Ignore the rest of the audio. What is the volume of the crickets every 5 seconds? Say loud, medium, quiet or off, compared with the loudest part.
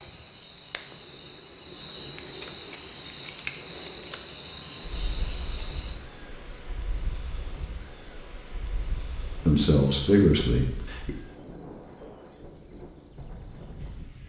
loud, loud, medium.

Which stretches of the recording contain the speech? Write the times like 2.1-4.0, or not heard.
9.2-11.1.